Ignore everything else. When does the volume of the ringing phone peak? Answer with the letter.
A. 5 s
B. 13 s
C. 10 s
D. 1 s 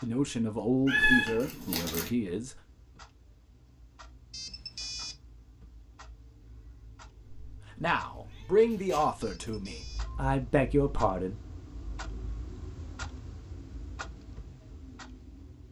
A.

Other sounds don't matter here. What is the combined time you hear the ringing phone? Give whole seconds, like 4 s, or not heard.
2 s.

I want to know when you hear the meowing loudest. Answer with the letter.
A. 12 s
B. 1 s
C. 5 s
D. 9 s
B.